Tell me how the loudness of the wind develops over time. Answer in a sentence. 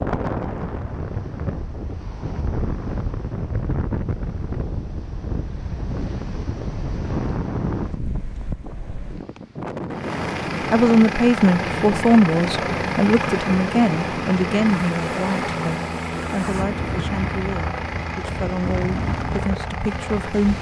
The volume of the wind stays about the same.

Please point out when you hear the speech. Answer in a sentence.
You can hear the speech from 10.7 to 20.5 s.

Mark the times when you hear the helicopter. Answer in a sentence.
The helicopter can be heard from 9.9 to 20.5 s.